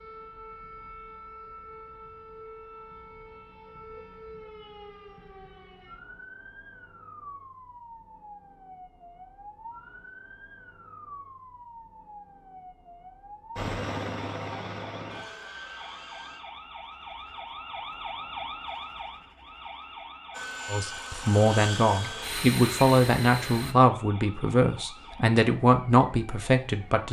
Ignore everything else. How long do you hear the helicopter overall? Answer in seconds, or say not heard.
6 s.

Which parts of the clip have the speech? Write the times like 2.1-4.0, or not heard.
20.7-27.0.